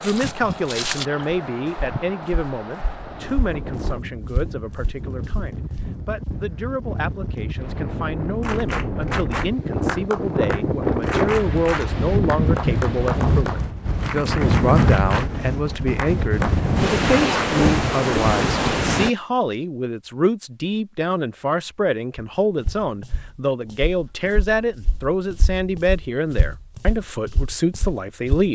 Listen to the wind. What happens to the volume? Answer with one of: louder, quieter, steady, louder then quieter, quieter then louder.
louder.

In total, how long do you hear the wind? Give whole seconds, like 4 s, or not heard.
19 s.